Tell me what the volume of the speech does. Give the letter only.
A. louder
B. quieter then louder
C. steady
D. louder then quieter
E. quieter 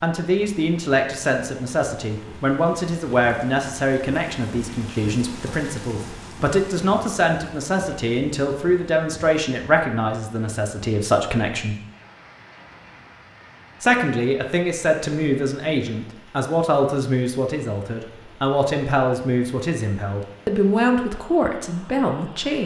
C.